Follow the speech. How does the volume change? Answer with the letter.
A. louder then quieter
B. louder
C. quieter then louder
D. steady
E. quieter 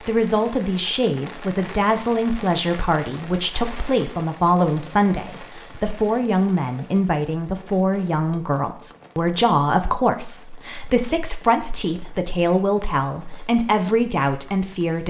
D.